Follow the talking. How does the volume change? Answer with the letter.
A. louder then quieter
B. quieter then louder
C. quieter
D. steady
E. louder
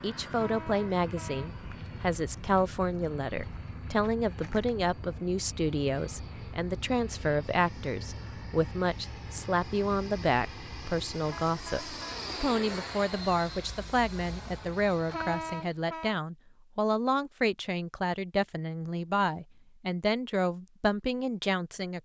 D.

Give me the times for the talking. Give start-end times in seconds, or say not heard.
0.0-22.0.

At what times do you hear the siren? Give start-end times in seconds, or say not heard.
not heard.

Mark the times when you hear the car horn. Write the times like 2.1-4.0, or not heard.
0.3-1.5, 11.3-12.2, 15.1-16.2.